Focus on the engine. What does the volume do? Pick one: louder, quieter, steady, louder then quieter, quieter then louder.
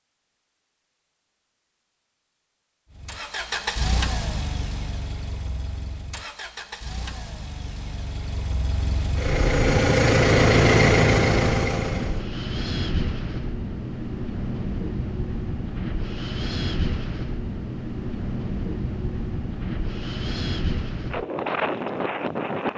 quieter then louder.